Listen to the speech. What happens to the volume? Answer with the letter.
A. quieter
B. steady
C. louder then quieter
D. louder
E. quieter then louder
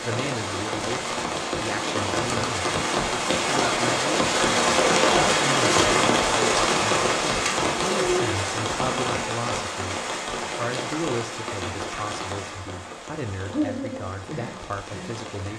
B.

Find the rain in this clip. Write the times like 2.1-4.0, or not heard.
0.0-15.5.